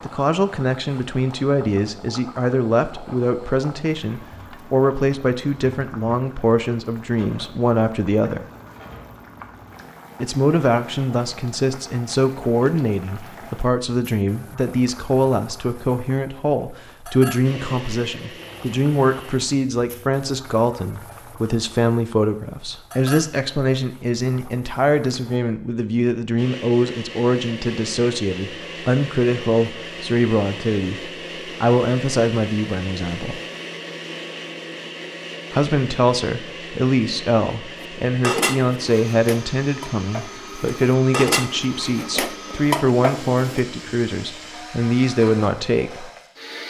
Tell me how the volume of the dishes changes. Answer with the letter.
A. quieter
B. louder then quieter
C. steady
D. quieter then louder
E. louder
D.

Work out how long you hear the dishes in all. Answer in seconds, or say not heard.
6 s.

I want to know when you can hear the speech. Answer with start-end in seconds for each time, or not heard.
0.0-8.4, 10.2-33.4, 35.5-46.1.